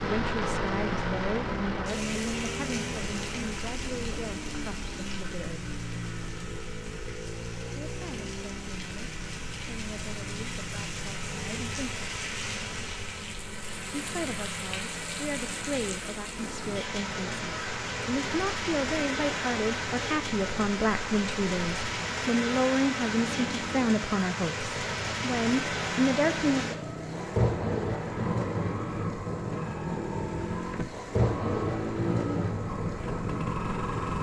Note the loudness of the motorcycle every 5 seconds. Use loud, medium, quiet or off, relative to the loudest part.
loud, medium, medium, medium, medium, loud, loud.